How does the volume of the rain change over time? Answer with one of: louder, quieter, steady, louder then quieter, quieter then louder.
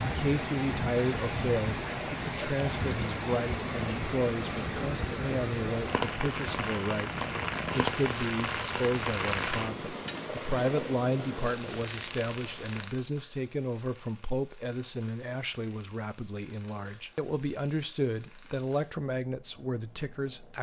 steady.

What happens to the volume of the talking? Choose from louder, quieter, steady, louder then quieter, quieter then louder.
steady.